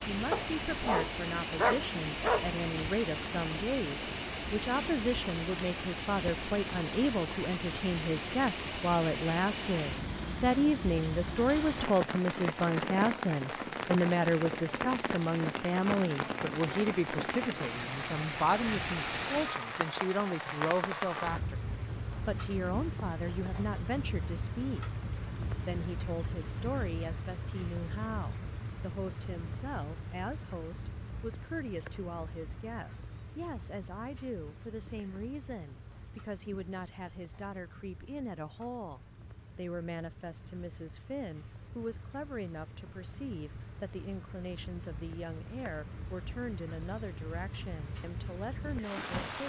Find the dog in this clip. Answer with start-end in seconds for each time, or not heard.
0.3-2.5.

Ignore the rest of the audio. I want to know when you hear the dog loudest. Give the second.
2 s.